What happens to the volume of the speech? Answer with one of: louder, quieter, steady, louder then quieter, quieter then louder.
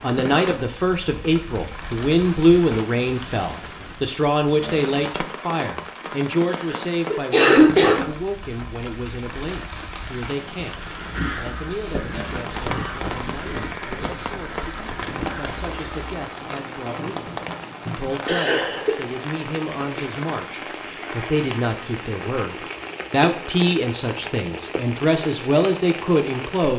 quieter then louder.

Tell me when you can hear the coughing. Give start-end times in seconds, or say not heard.
6.5-8.1, 18.2-18.9.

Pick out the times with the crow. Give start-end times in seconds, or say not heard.
10.8-16.2.